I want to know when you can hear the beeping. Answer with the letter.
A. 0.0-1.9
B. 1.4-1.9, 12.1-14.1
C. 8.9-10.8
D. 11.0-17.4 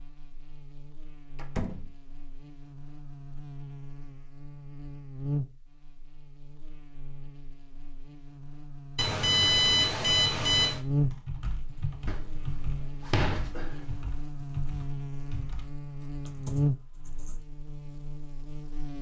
C.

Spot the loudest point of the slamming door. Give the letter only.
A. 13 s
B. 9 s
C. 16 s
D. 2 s
A.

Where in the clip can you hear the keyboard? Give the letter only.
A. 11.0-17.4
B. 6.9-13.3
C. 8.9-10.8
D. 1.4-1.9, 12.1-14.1
A.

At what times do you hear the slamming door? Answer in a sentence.
You can hear the slamming door from 1.4 to 1.9 s and from 12.1 to 14.1 s.